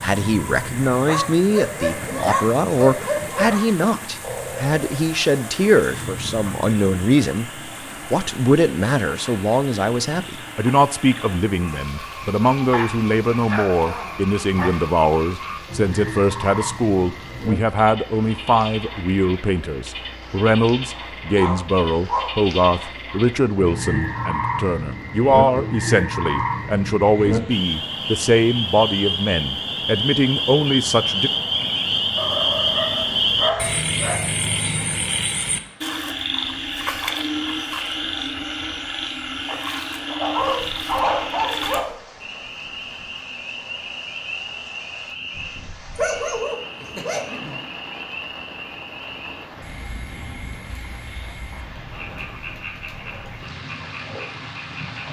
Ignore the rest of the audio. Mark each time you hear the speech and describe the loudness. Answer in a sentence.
The speech can be heard from 0.0 to 7.5 s, at a steady volume; and from 8.1 to 31.3 s, at a steady volume.